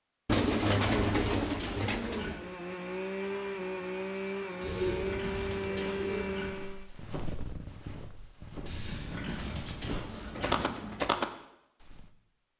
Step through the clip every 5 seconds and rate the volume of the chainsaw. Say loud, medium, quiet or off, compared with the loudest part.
loud, loud, off.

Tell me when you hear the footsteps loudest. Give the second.
11 s.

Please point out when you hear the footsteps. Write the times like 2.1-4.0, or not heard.
6.5-12.1.